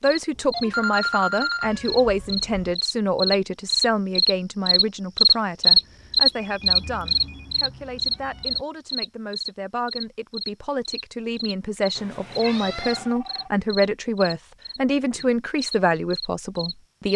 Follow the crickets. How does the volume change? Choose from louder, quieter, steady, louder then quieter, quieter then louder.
louder then quieter.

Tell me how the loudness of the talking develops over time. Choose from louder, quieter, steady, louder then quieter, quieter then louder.
quieter then louder.